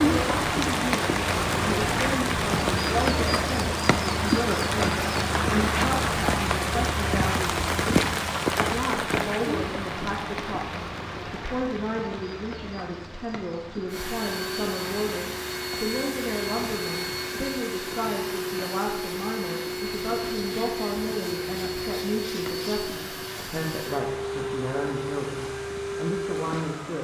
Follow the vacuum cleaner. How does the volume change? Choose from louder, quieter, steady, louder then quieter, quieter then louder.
steady.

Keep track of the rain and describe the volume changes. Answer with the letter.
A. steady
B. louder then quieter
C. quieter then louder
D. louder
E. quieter
E.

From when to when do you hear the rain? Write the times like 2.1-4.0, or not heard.
0.0-26.9.